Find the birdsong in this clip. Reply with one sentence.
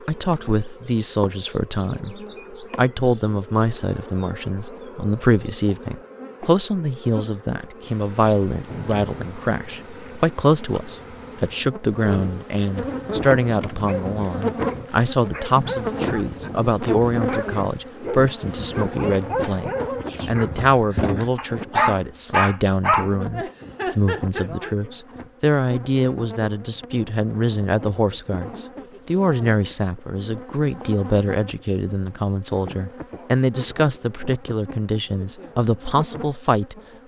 The birdsong can't be heard in this clip.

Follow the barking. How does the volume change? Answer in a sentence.
The loudness of the barking goes up.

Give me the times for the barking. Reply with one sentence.
You can hear the barking from 12.8 to 24.7 s.